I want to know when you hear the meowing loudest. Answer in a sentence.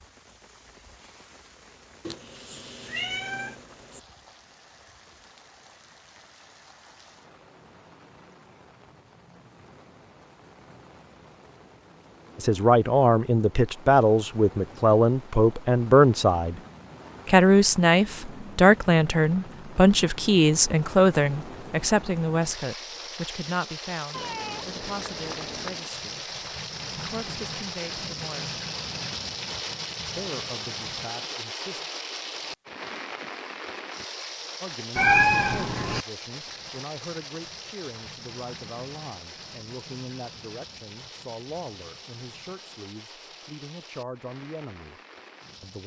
The volume of the meowing peaks at 35 seconds.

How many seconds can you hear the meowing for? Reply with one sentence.
The meowing can be heard for 5 seconds in total.